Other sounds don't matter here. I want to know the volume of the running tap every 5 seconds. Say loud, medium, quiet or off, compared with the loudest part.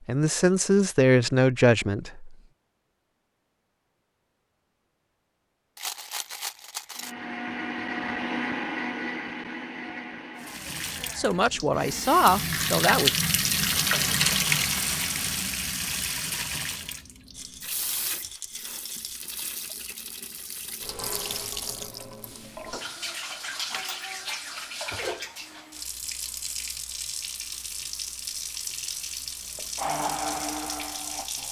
off, off, loud, medium, medium, medium, medium.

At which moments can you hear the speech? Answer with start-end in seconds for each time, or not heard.
0.1-2.4, 11.2-13.2.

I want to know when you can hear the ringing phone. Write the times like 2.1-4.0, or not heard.
not heard.